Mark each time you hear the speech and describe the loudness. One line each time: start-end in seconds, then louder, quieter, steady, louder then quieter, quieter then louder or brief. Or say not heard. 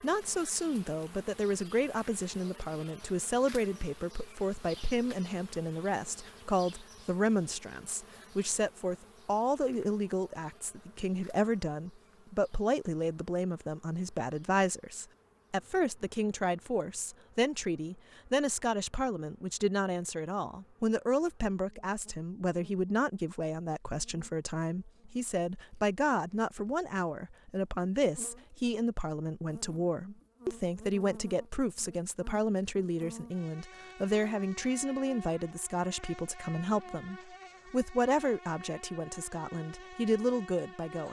0.0-41.0 steady.